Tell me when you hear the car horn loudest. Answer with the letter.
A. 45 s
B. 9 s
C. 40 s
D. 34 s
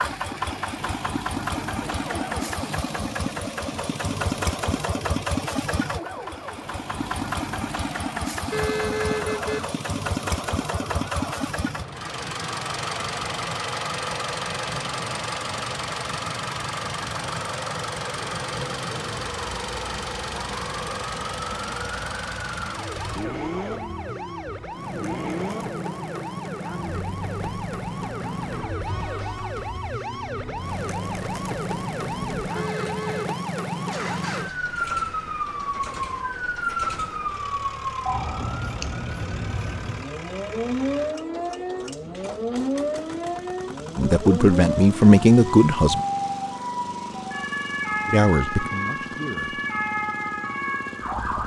B.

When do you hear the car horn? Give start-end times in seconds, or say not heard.
8.5-9.6, 32.5-33.4.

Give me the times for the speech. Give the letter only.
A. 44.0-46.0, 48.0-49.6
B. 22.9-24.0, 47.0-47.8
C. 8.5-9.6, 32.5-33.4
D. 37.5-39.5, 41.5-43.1
A.